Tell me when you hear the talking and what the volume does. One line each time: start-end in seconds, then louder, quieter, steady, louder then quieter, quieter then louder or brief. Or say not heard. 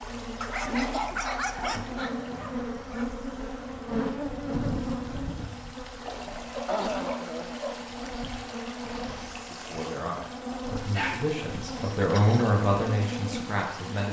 9.4-14.0 louder then quieter.